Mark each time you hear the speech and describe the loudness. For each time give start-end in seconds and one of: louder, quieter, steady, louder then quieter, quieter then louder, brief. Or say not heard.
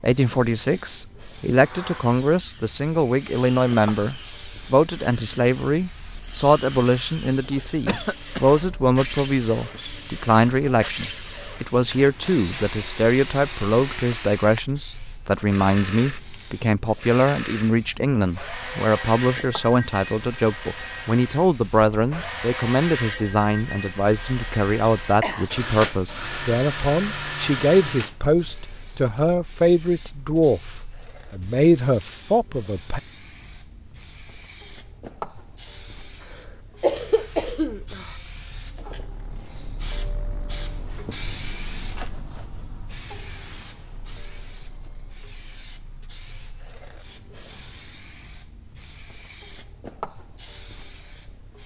0.0-33.0 steady.